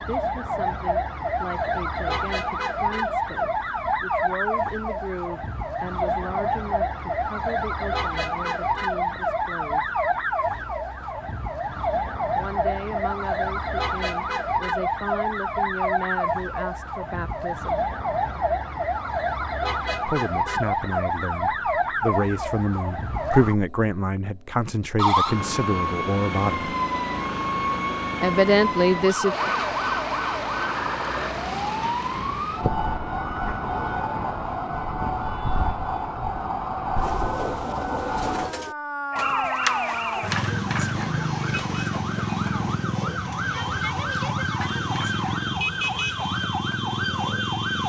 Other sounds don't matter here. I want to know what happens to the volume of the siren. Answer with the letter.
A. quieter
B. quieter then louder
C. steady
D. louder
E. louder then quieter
C.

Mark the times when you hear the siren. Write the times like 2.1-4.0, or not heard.
0.0-47.8.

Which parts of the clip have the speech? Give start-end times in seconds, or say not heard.
0.0-9.9, 12.3-17.8, 20.1-26.7, 28.2-29.4.